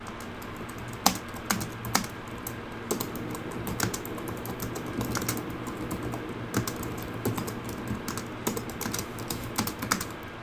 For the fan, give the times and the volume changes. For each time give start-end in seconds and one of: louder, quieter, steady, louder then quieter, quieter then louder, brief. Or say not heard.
0.0-10.3 steady.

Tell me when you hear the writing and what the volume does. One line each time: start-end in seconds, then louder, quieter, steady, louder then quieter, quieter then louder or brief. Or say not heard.
not heard.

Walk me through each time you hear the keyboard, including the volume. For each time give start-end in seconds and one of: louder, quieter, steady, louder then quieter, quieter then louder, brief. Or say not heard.
0.0-10.3 steady.